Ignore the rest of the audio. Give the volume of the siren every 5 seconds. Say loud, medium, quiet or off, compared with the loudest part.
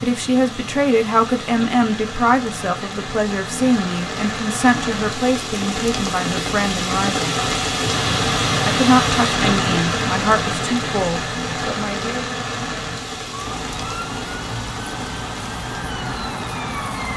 off, off, loud, loud.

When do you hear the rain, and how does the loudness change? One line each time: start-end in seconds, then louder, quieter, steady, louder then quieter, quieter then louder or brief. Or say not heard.
0.0-17.1 louder then quieter.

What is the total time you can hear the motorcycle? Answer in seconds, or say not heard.
not heard.